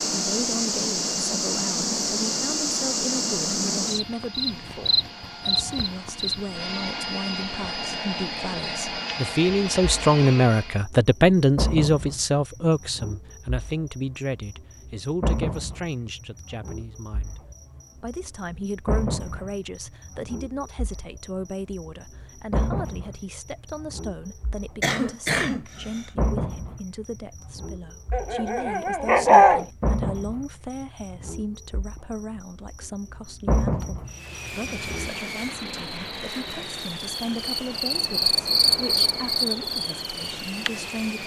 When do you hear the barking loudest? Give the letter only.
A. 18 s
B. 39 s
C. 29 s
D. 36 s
C.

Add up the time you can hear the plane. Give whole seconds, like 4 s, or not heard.
18 s.